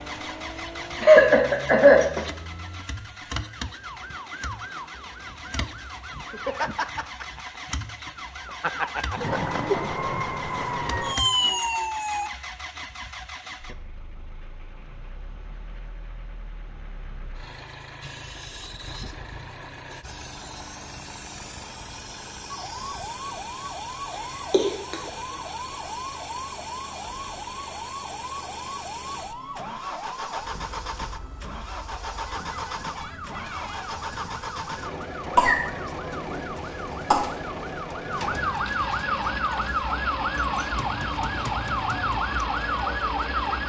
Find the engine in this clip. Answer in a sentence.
You can hear the engine from 0.0 to 43.6 s.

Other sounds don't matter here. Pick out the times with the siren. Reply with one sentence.
You can hear the siren from 0.0 to 12.3 s and from 22.5 to 43.6 s.